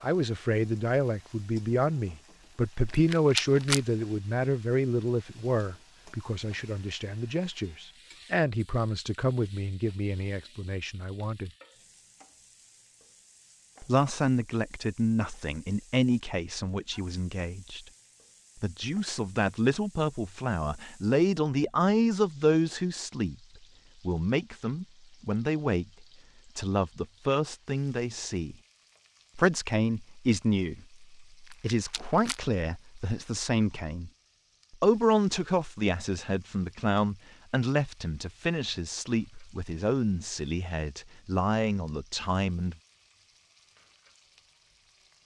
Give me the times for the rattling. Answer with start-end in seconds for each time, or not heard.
2.9-3.9, 31.4-32.4.